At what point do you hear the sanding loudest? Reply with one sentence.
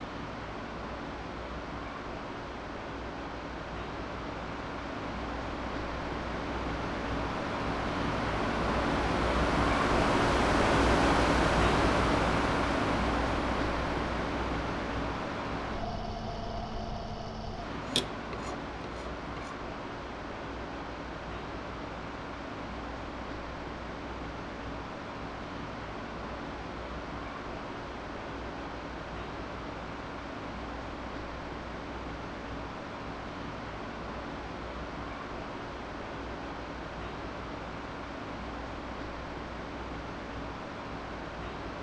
The volume of the sanding peaks at 18 seconds.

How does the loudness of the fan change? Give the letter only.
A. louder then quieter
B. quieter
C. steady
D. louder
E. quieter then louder
A.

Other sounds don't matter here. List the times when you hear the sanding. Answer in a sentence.
The sanding can be heard from 17.8 to 19.6 s.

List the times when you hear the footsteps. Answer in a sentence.
The footsteps can't be heard in this clip.